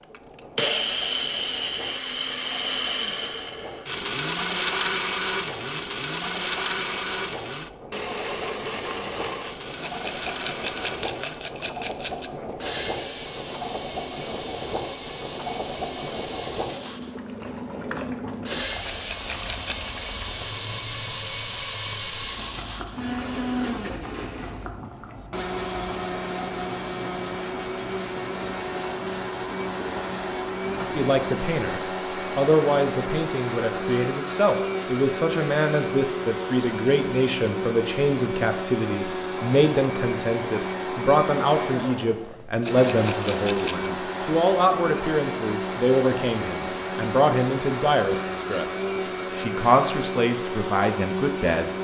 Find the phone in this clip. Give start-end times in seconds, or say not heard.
not heard.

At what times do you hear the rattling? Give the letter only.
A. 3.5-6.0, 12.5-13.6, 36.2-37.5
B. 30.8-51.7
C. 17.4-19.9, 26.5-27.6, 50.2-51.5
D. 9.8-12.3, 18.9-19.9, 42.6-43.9
D.